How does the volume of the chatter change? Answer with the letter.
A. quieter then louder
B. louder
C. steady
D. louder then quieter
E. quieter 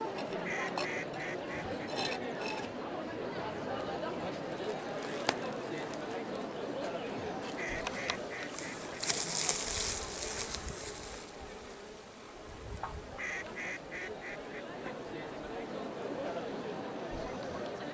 A.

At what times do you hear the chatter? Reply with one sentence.
You can hear the chatter from 0.0 to 17.8 s.